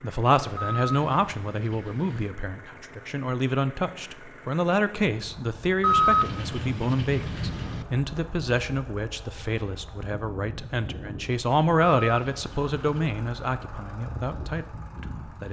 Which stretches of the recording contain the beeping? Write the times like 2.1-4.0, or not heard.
0.6-2.4, 5.8-7.8, 11.9-13.2.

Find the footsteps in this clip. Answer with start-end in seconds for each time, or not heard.
not heard.